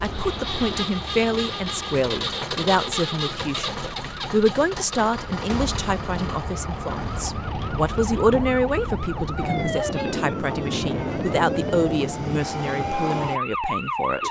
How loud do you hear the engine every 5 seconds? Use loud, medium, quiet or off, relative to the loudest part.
loud, medium, off.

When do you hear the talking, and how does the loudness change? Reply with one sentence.
The talking can be heard from 0.0 to 14.2 s, at a steady volume.